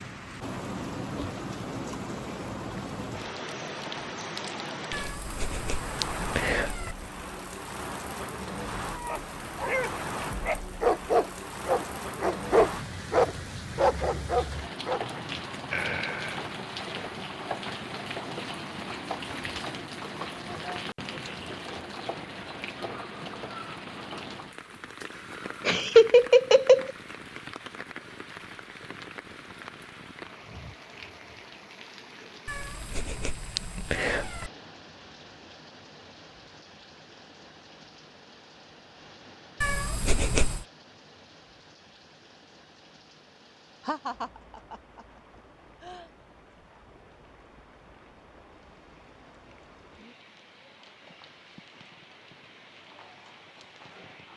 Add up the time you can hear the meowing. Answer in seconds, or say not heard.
5 s.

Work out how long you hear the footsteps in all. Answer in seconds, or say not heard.
not heard.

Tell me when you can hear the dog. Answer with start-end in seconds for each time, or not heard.
8.8-15.1.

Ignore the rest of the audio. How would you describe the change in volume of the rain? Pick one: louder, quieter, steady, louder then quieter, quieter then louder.
quieter.